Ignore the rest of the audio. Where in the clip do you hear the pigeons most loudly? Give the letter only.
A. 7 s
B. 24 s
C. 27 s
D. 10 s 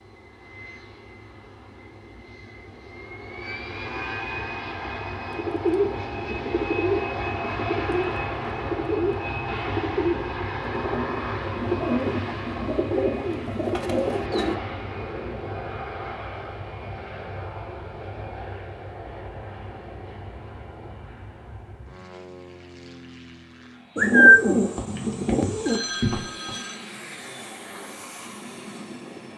B.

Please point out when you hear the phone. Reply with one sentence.
You can hear the phone from 24.8 to 26.8 s.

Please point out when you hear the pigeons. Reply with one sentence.
You can hear the pigeons from 5.3 to 14.6 s and from 23.9 to 25.8 s.